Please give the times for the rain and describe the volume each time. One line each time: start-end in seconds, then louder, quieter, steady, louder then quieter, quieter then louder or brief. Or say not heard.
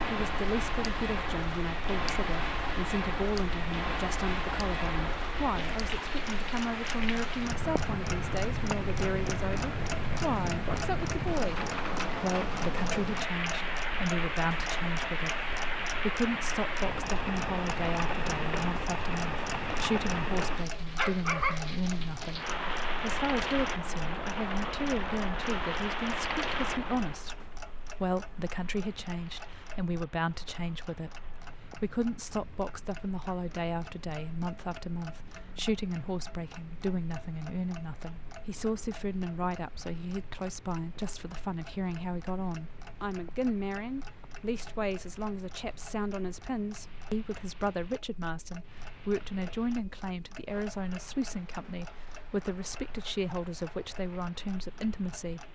0.0-55.5 quieter.